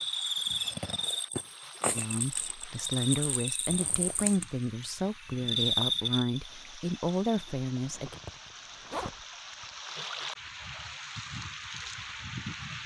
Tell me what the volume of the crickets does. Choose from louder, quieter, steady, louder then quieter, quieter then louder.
quieter then louder.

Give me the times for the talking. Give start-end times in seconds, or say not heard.
1.9-8.2.